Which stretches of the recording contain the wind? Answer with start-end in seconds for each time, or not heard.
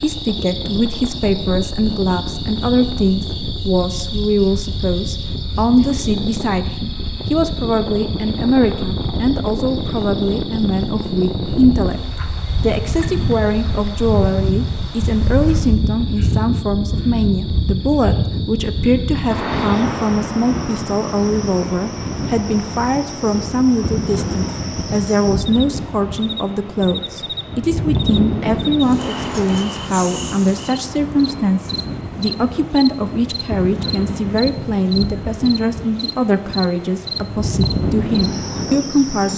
0.0-39.3.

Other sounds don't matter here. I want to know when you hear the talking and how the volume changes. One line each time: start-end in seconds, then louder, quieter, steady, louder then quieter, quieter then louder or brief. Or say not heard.
0.0-12.0 steady
12.6-39.3 steady.